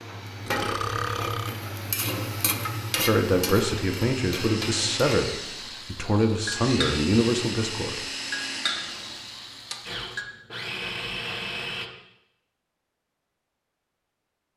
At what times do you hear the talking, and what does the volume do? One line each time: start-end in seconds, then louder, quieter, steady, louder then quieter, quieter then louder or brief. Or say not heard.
3.0-8.0 steady.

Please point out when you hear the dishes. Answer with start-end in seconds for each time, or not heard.
not heard.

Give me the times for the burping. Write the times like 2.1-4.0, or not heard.
0.5-1.6.